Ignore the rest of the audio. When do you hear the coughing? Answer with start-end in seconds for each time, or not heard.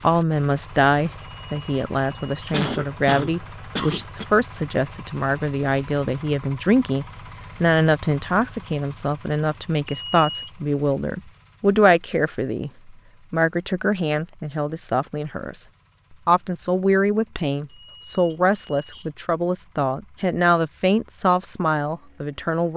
2.1-4.2.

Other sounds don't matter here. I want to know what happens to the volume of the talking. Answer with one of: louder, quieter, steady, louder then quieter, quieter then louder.
steady.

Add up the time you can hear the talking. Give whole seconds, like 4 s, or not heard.
22 s.